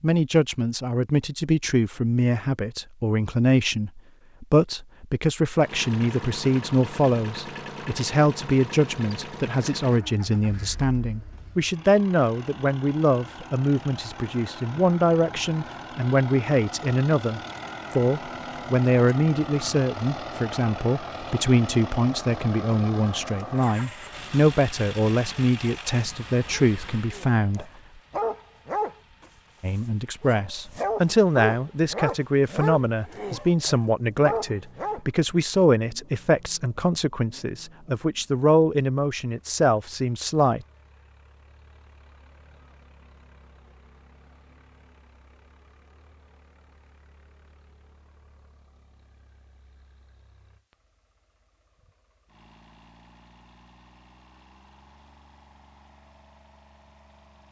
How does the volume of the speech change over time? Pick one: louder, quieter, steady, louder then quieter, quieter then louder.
steady.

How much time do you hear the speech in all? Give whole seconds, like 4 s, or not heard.
39 s.